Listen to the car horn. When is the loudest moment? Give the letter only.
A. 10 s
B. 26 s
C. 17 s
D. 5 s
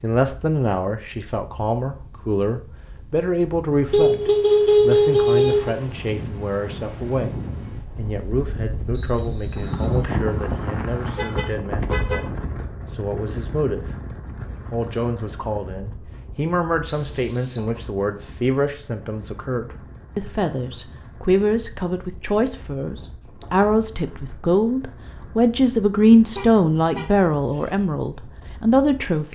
D.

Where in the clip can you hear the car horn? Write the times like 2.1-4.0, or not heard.
3.9-5.8, 11.2-12.2, 26.4-27.8.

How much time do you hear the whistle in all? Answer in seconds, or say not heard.
2 s.